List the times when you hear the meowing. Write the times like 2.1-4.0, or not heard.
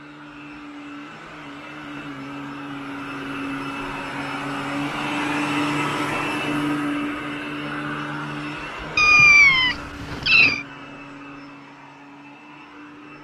8.9-10.7.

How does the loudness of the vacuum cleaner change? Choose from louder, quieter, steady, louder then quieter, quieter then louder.
louder then quieter.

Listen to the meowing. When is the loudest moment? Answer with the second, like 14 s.
9 s.